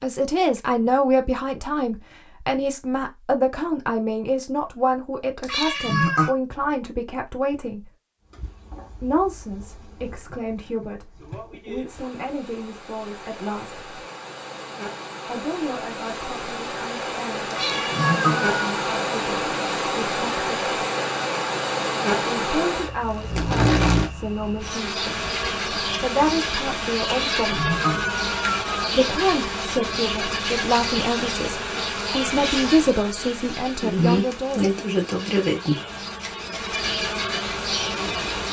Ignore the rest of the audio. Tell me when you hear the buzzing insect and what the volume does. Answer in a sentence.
The buzzing insect can be heard from 8.2 to 38.4 s, getting louder.